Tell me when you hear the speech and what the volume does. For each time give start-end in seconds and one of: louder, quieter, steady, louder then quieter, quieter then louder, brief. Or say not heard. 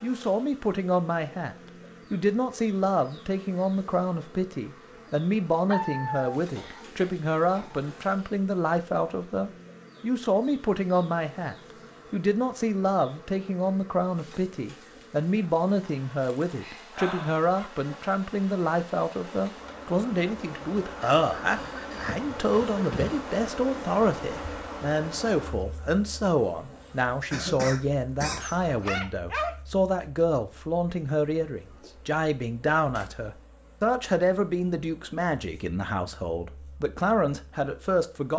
0.0-38.3 steady.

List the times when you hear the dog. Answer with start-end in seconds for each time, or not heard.
5.7-6.4, 16.2-17.7, 28.4-29.6.